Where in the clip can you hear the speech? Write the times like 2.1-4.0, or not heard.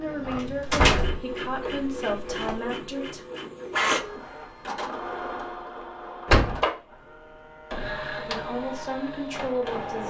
0.0-3.2, 8.2-10.0.